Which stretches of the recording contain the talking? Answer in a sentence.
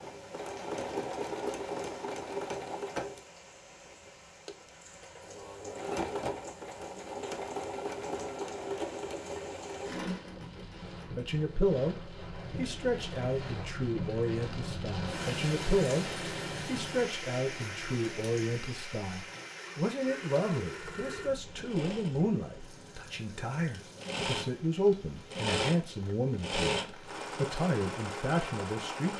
You can hear the talking from 11.2 to 29.1 s.